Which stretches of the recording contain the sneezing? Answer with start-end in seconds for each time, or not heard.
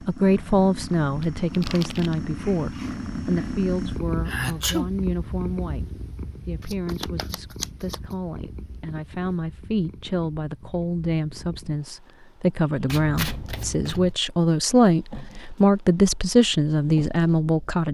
4.2-4.9.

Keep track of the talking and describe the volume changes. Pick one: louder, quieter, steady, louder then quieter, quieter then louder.
quieter then louder.